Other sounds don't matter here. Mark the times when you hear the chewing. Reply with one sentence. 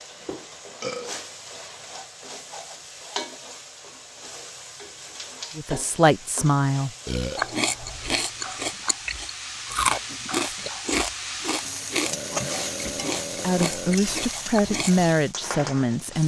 The chewing can be heard from 7.3 to 15.1 s.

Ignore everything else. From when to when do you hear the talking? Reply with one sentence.
The talking can be heard from 5.5 to 6.9 s and from 13.4 to 16.2 s.